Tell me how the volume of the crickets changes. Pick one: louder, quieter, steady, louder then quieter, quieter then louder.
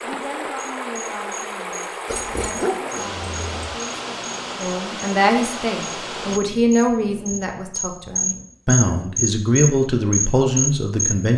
louder.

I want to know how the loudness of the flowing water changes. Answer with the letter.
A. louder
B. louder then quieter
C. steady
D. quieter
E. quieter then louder
C.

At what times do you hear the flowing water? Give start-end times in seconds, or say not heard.
0.0-6.4.